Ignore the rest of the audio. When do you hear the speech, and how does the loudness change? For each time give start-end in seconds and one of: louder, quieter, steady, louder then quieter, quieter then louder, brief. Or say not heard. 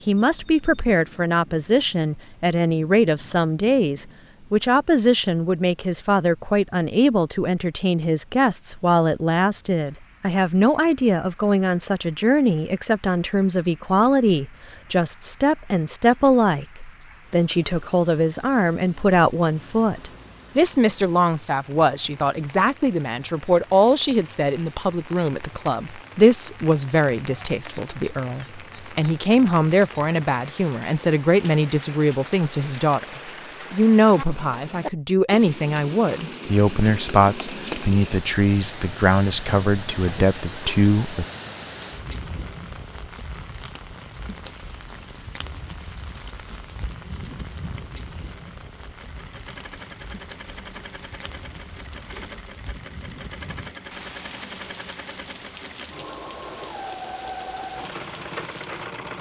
0.1-33.0 steady
33.7-41.2 steady.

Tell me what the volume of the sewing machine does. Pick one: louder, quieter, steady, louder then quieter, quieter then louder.
louder.